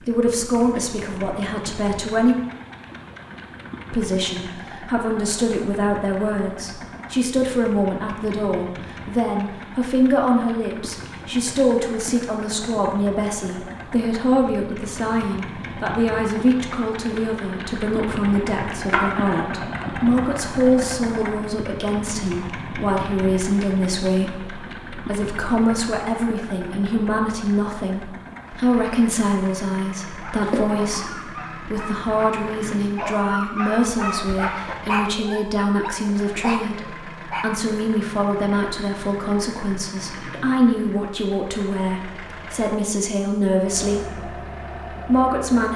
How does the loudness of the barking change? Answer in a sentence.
The loudness of the barking goes up.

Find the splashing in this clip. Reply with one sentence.
The splashing can be heard from 18.9 to 19.6 s and from 30.4 to 31.1 s.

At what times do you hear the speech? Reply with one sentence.
The speech can be heard from 0.0 to 2.4 s and from 3.9 to 45.7 s.